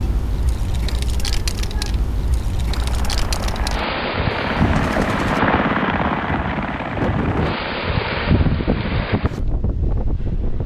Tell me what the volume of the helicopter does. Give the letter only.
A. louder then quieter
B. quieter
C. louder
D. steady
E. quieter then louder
A.